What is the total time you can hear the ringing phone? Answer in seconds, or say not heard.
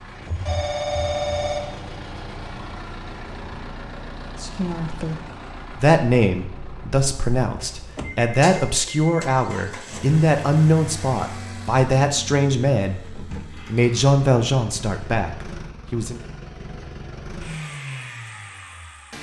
4 s.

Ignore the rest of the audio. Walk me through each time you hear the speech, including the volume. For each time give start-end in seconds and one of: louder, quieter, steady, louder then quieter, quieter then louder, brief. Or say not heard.
4.4-16.2 steady.